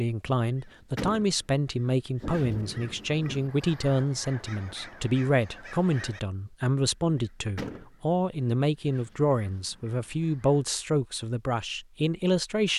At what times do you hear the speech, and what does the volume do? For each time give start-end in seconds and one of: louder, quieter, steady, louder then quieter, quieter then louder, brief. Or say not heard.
0.0-12.7 steady.